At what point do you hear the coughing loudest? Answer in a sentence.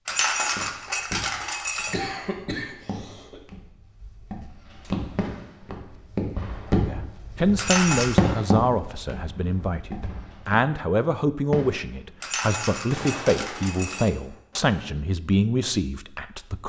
The volume of the coughing peaks at 2 seconds.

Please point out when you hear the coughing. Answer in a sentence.
The coughing can be heard from 1.9 to 3.5 s.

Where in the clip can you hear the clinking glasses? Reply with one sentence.
The clinking glasses can be heard from 0.1 to 1.9 s, from 7.5 to 8.2 s and from 12.2 to 14.1 s.